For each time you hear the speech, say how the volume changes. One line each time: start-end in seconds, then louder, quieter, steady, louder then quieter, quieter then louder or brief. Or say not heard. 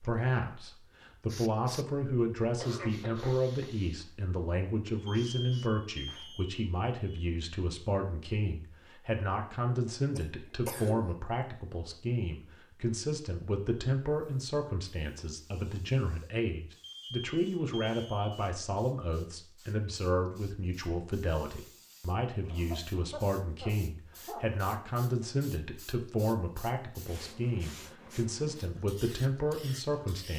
0.0-30.3 steady.